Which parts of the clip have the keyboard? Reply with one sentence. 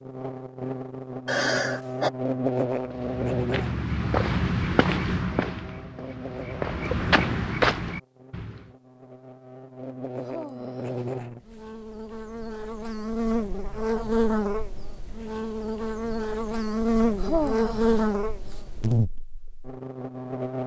You can't hear the keyboard here.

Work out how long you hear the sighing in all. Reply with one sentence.
The sighing can be heard for 4 seconds in total.